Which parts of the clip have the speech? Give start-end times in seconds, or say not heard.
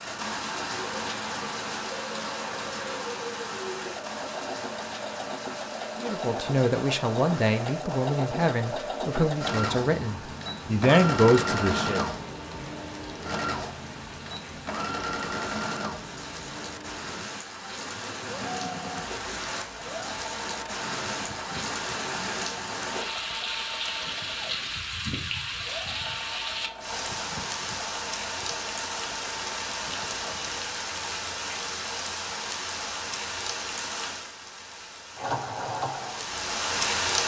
6.0-12.1.